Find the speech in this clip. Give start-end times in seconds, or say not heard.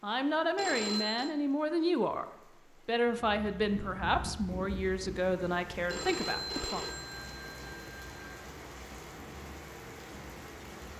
0.0-2.2, 2.9-6.8.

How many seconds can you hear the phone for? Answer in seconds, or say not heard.
3 s.